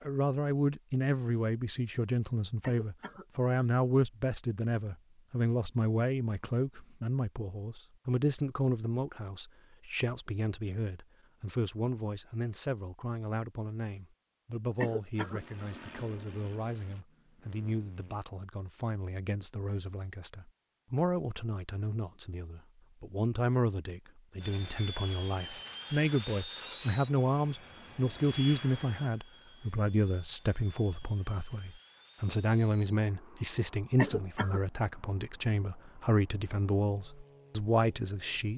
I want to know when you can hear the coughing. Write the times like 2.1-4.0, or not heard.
2.6-3.2, 14.8-15.4, 34.0-34.6.